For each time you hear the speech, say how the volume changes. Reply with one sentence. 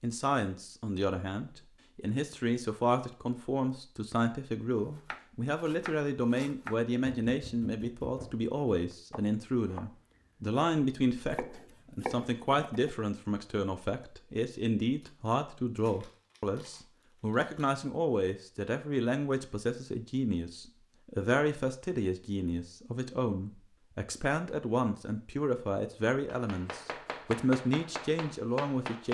You can hear the speech from 0.0 to 29.0 s, at a steady volume.